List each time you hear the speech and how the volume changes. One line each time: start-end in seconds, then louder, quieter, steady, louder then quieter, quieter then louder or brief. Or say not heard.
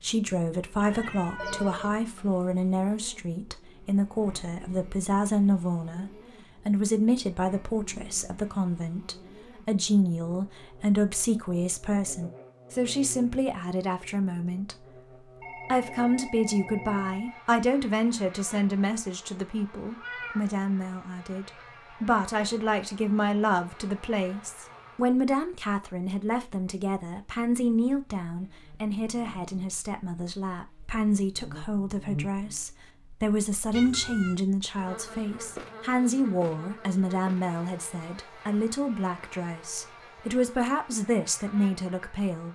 0.0-14.8 steady
15.7-42.5 steady.